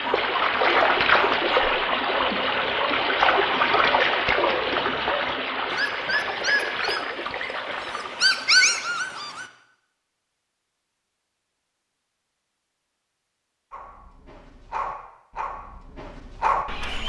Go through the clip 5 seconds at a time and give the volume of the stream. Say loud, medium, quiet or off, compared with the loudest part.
loud, medium, off, off.